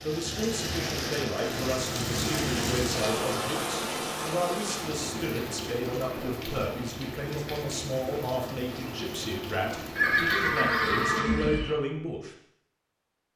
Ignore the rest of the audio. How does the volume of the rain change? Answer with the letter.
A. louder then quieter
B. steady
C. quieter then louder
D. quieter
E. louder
D.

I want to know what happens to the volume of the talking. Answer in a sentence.
The loudness of the talking stays about the same.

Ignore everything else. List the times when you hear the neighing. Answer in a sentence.
You can hear the neighing from 9.9 to 11.7 s.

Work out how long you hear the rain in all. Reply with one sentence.
The rain can be heard for 11 seconds in total.